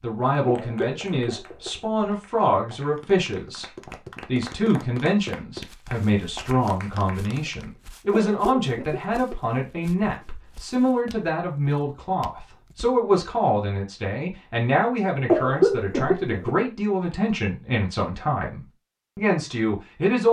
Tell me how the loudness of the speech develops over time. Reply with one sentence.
The volume of the speech stays about the same.